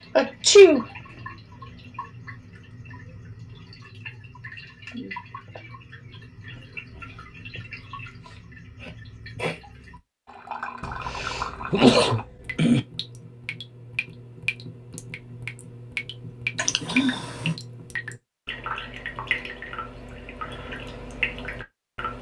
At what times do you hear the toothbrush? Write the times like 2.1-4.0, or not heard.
not heard.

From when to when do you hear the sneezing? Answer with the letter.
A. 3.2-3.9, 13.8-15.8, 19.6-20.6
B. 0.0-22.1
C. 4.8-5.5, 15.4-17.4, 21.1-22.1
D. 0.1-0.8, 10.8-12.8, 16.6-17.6
D.